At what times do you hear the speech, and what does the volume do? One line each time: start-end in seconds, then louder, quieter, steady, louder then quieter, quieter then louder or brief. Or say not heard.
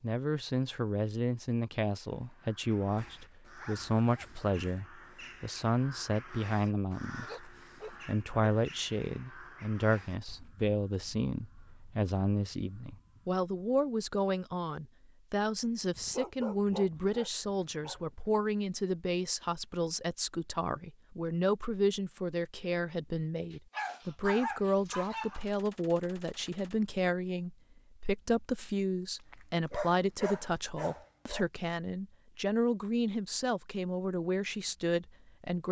0.0-35.6 steady.